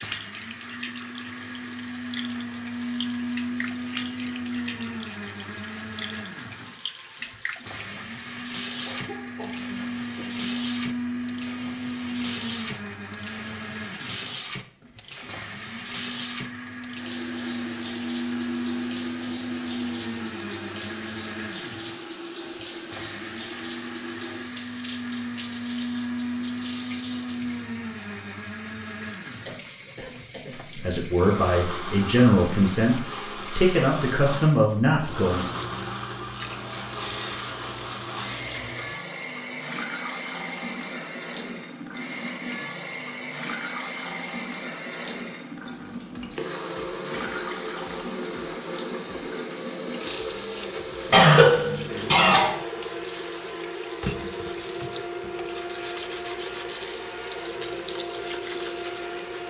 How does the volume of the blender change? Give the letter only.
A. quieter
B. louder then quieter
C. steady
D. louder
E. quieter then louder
C.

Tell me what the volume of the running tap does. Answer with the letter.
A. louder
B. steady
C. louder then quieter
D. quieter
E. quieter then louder
B.